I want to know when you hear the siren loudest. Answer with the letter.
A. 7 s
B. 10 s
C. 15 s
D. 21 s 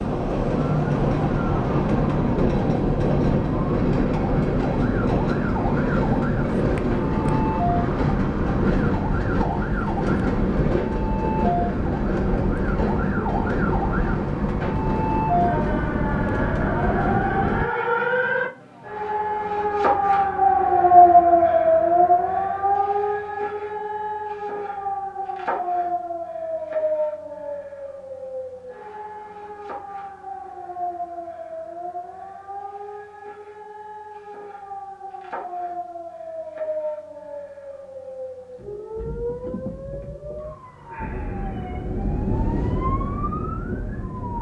D.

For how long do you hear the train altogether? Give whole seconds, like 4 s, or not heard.
21 s.